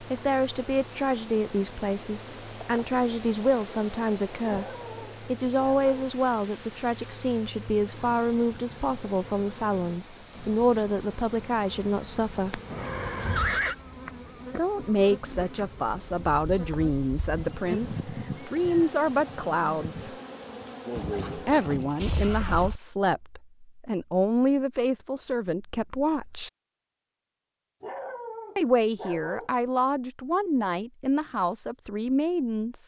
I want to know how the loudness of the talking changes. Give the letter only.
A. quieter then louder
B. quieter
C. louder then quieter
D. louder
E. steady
E.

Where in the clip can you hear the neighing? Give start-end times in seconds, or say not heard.
12.7-13.8, 20.9-22.8.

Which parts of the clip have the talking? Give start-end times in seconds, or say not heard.
0.0-4.7, 5.2-12.6, 14.6-20.1, 21.4-26.5, 28.6-32.8.